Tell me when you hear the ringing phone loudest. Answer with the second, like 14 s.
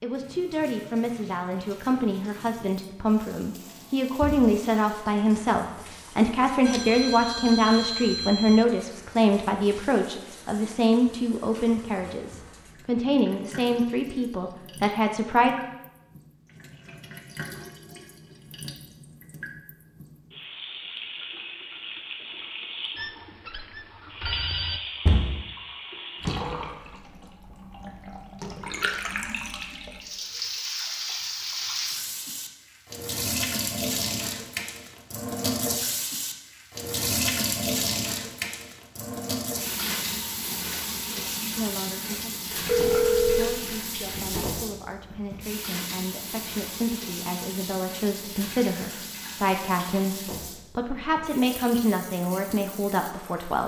43 s.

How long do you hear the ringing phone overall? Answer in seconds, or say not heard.
5 s.